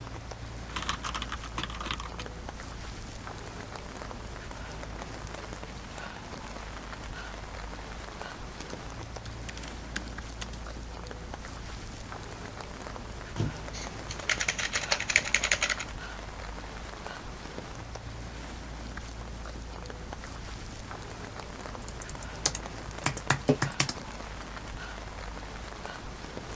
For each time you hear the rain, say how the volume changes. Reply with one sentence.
You can hear the rain from 0.0 to 26.5 s, at a steady volume.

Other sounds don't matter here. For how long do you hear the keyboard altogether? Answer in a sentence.
You can hear the keyboard for 8 seconds altogether.